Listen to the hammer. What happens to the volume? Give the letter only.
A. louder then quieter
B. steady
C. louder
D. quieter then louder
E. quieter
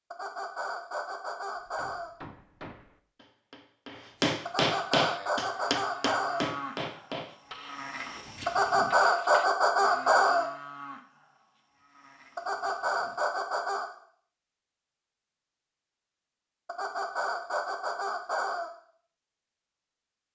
A.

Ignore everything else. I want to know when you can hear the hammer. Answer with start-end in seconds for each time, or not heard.
1.6-9.4.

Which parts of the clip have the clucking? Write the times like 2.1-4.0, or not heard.
0.1-2.1, 4.5-6.5, 8.4-10.4, 12.3-13.9, 16.6-18.7.